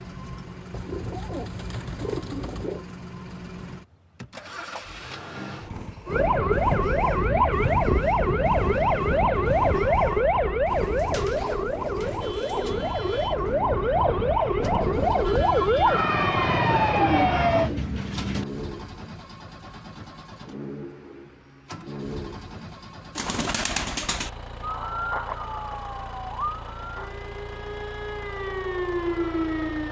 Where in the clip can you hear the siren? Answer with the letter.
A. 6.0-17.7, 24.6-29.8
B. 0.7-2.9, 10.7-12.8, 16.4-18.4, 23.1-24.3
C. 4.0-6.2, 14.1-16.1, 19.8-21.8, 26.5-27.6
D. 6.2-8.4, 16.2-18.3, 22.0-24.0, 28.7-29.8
A.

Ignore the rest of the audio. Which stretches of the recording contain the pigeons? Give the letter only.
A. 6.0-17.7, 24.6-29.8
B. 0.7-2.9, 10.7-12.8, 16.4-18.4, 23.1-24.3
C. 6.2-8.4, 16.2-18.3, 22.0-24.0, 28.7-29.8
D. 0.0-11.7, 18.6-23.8
B.